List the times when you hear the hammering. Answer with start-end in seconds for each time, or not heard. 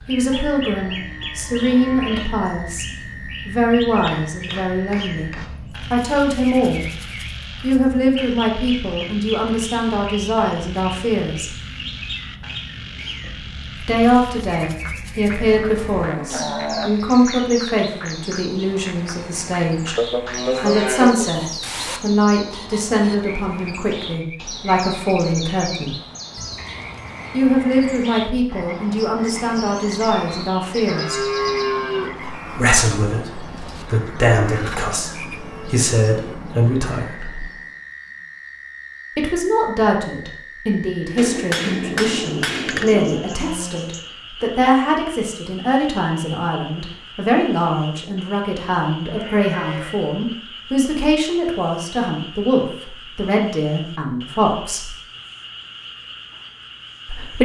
4.0-5.6, 41.1-43.2.